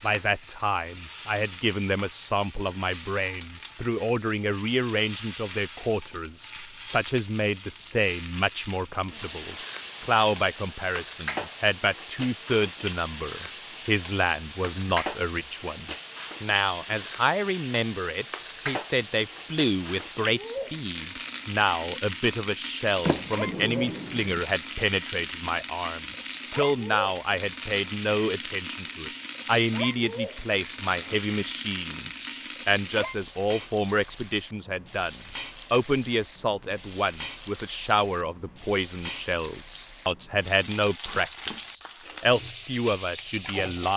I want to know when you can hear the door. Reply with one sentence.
The door can be heard from 23.1 to 24.4 s.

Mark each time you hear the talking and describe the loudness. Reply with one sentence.
The talking can be heard from 0.0 to 43.9 s, at a steady volume.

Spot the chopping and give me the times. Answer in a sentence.
The chopping can't be heard in this clip.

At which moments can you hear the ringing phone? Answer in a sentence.
You can't hear the ringing phone here.